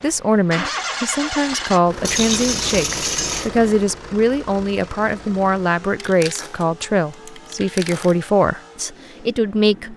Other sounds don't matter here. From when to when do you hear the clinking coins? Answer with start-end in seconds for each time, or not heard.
2.0-3.5, 6.0-8.2.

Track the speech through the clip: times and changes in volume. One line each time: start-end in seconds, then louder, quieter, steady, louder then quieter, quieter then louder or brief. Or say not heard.
0.0-9.9 steady.